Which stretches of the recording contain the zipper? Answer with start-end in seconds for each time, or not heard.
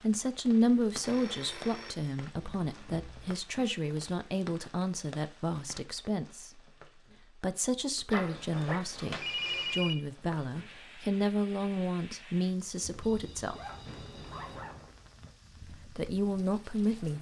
2.6-3.1, 8.1-8.8, 13.4-15.3.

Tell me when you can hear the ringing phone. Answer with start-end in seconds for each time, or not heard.
1.0-3.3, 8.1-9.9, 12.8-14.8.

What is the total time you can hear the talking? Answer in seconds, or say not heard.
14 s.